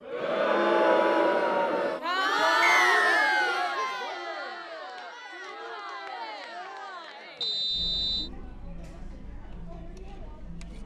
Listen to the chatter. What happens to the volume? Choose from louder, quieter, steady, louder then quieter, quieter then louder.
quieter.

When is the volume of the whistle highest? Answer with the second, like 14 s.
3 s.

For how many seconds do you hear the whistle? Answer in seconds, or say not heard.
2 s.